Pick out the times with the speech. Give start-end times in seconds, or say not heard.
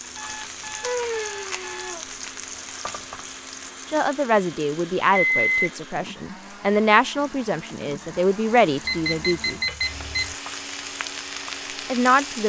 3.9-9.6, 11.8-12.4.